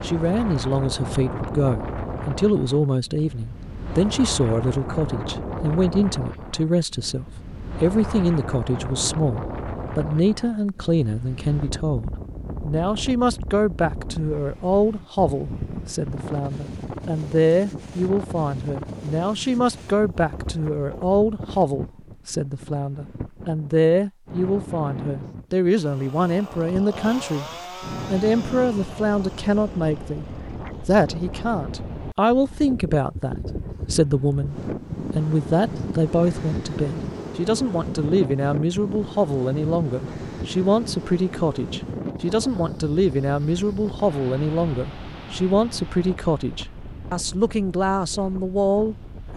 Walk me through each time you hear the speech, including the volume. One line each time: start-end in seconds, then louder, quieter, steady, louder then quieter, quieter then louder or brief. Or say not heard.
0.0-27.4 steady
28.1-49.3 steady.